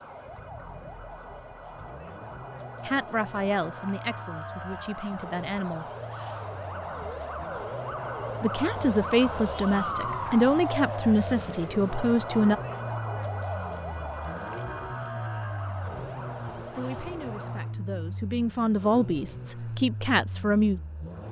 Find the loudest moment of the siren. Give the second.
10 s.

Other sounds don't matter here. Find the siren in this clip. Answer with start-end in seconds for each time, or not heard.
0.0-17.8.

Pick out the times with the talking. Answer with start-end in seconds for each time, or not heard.
2.9-5.8, 8.4-12.6, 16.7-20.8.